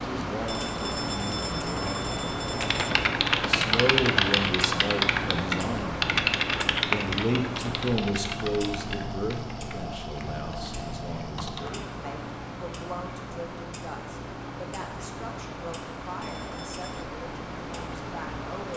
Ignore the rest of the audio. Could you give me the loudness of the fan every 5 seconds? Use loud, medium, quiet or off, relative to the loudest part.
loud, loud, medium, medium.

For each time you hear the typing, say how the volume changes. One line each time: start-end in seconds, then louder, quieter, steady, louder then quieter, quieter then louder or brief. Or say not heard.
2.6-11.9 quieter.